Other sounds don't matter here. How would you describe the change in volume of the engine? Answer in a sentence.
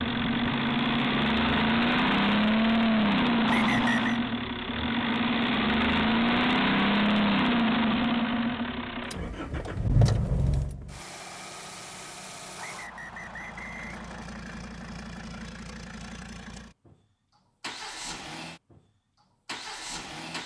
The loudness of the engine goes down.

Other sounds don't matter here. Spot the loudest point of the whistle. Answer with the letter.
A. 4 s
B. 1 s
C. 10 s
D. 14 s
A.